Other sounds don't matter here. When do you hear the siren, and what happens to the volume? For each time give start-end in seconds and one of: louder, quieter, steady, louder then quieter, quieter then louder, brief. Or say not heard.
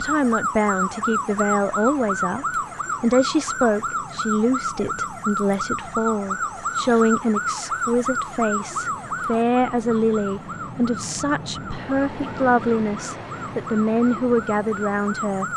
0.0-15.5 quieter.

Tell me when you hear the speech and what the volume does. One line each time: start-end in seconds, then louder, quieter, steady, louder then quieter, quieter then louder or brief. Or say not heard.
0.0-15.4 steady.